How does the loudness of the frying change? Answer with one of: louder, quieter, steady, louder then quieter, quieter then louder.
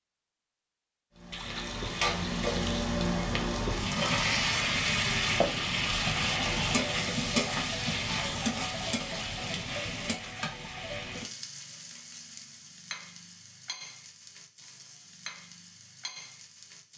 quieter.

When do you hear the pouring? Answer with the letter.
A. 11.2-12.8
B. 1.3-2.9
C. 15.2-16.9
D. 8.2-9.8
B.